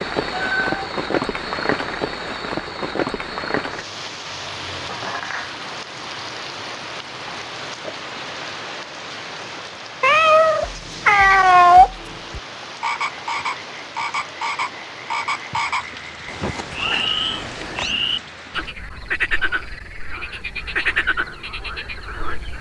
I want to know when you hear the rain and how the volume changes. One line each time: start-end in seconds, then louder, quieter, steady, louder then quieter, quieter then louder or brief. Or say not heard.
0.0-18.8 quieter.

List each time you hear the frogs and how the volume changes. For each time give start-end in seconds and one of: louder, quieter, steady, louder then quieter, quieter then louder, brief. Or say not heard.
10.6-22.5 steady.